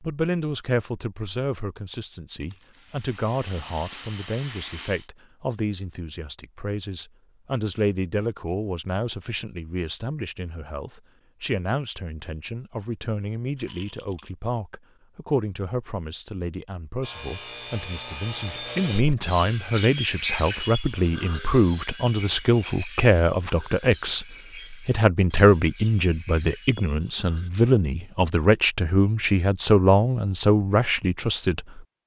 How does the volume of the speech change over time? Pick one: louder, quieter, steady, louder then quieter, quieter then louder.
louder.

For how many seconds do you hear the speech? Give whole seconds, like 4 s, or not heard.
32 s.